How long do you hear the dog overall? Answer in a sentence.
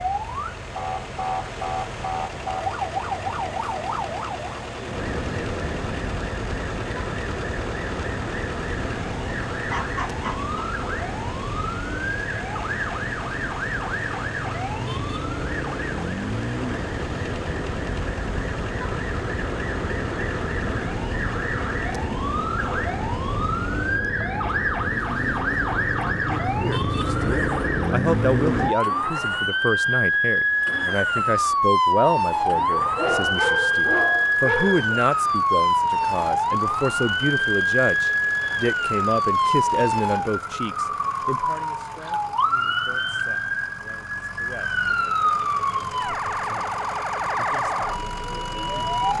The dog can be heard for 3 seconds in total.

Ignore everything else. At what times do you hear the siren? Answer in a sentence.
You can hear the siren from 0.0 to 49.1 s.